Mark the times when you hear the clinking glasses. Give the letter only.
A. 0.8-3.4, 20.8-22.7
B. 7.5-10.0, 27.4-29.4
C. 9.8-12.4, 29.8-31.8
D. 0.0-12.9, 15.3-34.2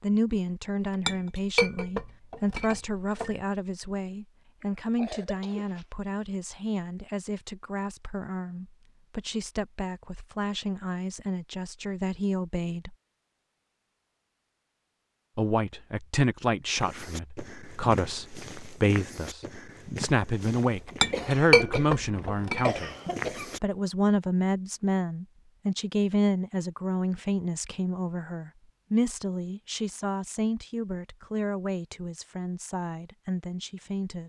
A.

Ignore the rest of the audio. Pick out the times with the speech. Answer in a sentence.
The speech can be heard from 0.0 to 12.9 s and from 15.3 to 34.2 s.